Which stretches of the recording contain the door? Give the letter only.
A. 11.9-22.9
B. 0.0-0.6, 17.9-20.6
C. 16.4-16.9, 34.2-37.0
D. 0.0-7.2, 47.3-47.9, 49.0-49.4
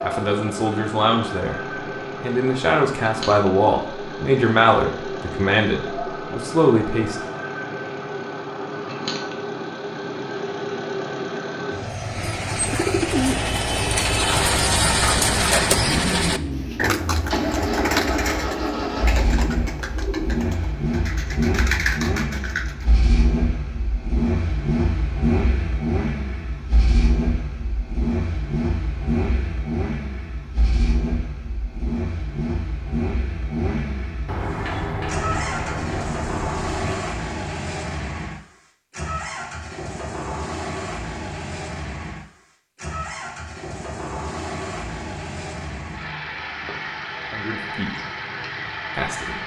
C.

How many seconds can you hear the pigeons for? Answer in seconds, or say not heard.
11 s.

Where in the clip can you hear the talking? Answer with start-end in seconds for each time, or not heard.
0.0-7.2, 47.3-47.9, 49.0-49.4.